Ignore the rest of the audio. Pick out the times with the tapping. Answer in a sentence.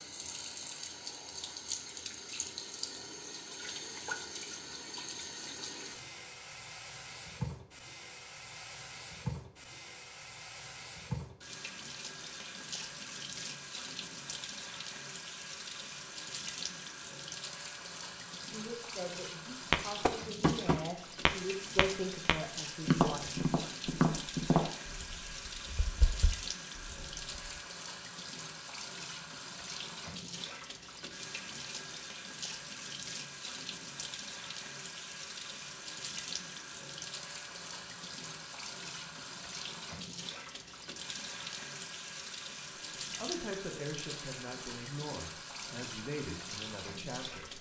You can hear the tapping from 19.7 to 27.5 s.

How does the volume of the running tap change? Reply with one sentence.
The loudness of the running tap stays about the same.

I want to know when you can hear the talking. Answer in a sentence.
You can hear the talking from 18.4 to 23.4 s and from 43.1 to 47.5 s.